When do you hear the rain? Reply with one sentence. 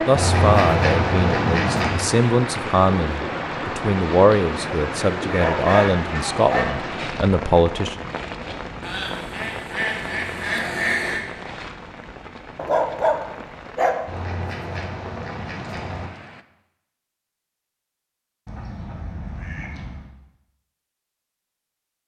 The rain can be heard from 0.0 to 16.4 s.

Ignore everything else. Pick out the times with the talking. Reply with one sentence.
You can hear the talking from 0.1 to 8.0 s.